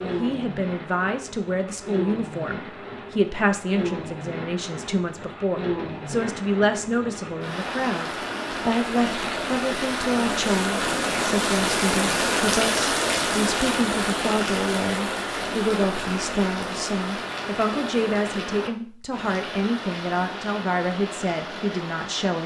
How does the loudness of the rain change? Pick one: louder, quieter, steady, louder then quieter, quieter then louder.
louder then quieter.